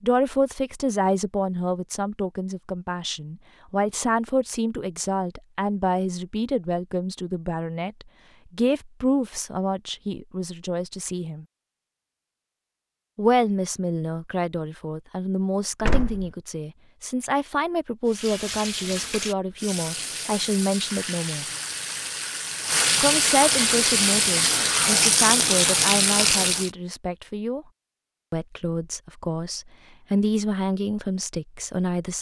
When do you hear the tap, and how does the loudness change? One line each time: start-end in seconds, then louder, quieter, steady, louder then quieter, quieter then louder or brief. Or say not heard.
18.1-26.7 louder.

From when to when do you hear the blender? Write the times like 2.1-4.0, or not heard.
not heard.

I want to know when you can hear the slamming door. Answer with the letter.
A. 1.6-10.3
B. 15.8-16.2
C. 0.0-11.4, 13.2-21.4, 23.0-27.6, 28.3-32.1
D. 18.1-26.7
B.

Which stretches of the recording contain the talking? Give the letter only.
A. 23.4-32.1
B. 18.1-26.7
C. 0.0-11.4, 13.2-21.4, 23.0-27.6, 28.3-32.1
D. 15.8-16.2
C.